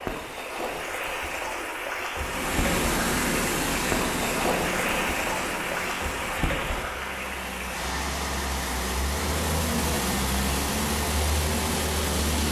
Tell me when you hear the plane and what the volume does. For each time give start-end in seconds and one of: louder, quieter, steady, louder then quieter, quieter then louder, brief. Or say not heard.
2.2-12.4 quieter then louder.